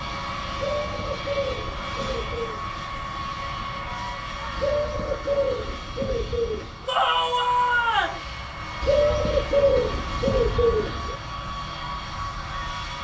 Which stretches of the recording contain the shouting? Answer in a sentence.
You can hear the shouting from 6.8 to 8.2 s.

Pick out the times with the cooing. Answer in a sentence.
The cooing can be heard from 0.6 to 2.6 s, from 4.5 to 6.9 s and from 8.8 to 11.2 s.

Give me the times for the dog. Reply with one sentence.
You can't hear the dog here.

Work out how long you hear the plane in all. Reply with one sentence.
The plane can be heard for 13 seconds in total.